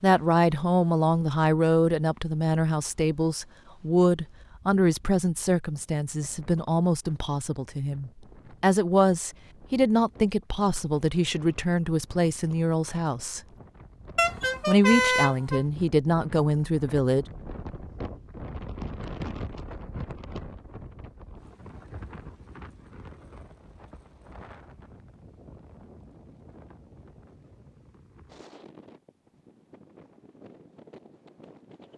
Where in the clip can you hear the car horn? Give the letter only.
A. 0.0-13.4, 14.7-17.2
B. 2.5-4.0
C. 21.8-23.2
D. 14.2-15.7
D.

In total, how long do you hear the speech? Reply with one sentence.
The speech can be heard for 16 seconds in total.